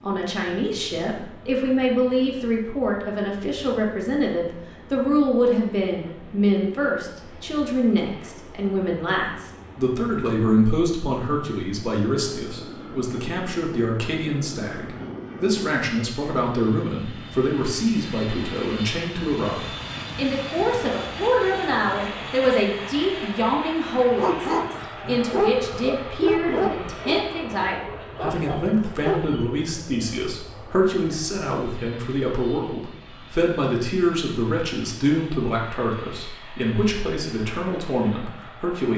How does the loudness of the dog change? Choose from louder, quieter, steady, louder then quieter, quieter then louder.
quieter then louder.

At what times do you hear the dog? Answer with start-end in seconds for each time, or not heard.
24.1-29.5.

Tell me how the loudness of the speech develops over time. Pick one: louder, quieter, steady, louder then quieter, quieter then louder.
steady.